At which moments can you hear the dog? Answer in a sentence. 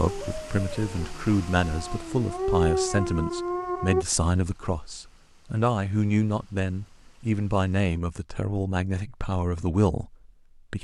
The dog can be heard from 0.0 to 4.0 s.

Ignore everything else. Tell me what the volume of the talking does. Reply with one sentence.
The loudness of the talking stays about the same.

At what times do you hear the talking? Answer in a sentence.
The talking can be heard from 0.0 to 10.7 s.